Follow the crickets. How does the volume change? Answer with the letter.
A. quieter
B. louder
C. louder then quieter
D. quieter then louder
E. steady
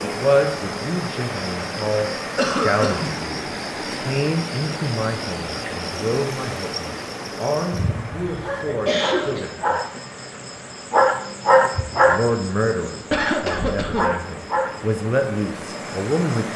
C.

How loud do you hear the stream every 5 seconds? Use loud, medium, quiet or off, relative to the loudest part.
loud, loud, medium, loud.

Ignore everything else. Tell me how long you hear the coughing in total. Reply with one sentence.
The coughing can be heard for 3 seconds in total.